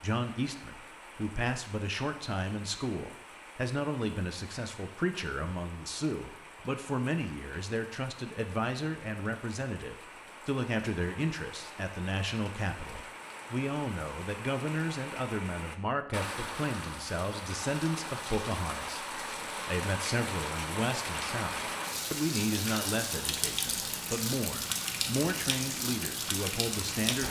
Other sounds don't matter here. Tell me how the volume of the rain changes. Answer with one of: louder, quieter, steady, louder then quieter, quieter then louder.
louder.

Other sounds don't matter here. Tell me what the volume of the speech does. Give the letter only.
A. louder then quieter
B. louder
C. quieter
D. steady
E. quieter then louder
D.